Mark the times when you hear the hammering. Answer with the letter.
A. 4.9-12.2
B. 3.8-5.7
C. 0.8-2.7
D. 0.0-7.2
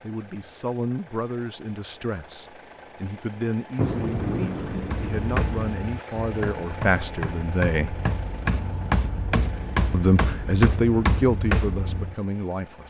A.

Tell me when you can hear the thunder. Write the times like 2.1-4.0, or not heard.
3.8-5.7.